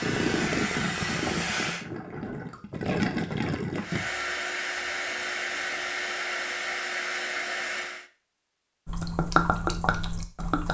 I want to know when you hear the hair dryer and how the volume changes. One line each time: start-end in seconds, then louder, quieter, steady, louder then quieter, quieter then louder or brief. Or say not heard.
0.0-1.9 brief
3.8-8.1 steady.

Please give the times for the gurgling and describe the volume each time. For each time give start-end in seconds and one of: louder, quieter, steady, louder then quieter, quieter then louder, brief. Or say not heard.
0.0-4.0 quieter then louder
8.8-10.6 brief.